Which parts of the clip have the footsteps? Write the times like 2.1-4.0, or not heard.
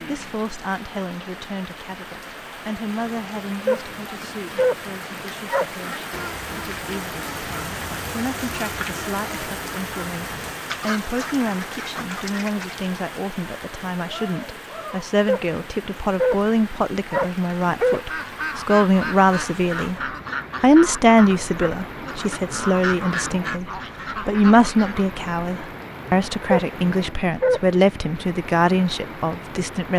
not heard.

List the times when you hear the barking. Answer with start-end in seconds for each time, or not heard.
3.6-5.7, 15.2-18.0, 26.5-28.1.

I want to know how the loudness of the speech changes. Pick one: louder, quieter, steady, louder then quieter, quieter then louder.
louder.